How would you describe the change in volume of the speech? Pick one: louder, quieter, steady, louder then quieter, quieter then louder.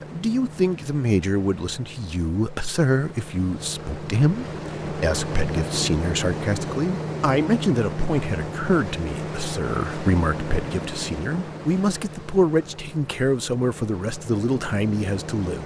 steady.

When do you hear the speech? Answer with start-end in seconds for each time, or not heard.
0.0-15.6.